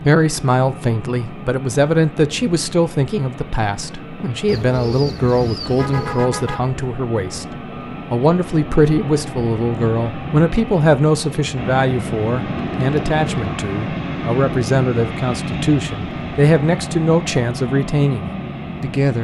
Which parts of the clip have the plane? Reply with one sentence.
The plane can be heard from 0.0 to 19.1 s.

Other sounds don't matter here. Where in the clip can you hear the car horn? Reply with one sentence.
You can hear the car horn from 5.7 to 6.8 s.